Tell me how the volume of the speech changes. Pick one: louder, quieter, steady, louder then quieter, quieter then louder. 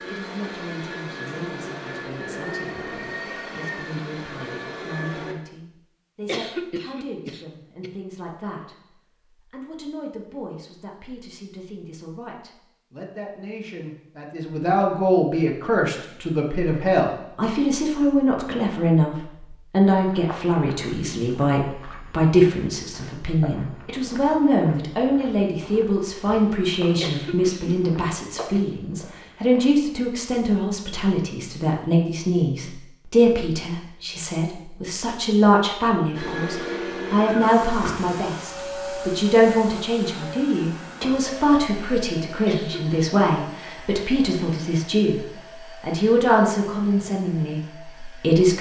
louder.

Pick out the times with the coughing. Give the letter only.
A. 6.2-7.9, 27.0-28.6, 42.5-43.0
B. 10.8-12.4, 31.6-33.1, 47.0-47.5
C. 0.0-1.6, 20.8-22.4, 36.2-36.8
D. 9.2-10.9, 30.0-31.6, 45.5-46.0
A.